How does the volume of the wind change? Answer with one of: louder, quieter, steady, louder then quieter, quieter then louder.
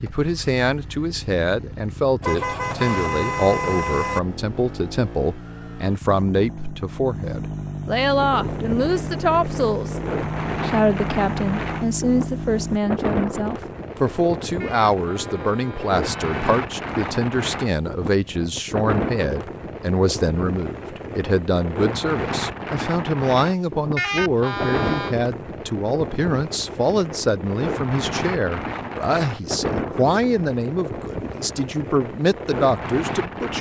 steady.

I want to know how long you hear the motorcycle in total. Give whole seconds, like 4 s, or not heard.
13 s.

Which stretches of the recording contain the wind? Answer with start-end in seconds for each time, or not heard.
8.1-33.5.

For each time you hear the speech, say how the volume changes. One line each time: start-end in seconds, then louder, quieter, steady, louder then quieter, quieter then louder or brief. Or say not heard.
0.0-10.0 steady
10.6-33.5 steady.